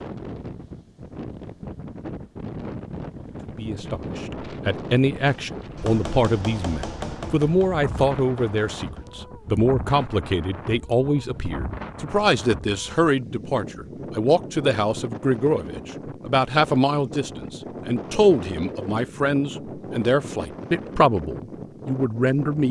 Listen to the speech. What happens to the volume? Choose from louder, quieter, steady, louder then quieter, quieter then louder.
steady.